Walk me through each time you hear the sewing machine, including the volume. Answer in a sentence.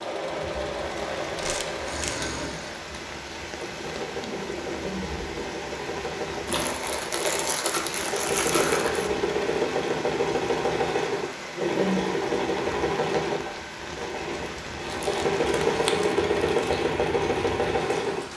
The sewing machine can be heard from 0.0 to 18.2 s, getting louder.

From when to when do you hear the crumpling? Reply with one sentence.
You can hear the crumpling from 1.4 to 2.2 s, from 6.5 to 9.1 s and from 14.8 to 16.8 s.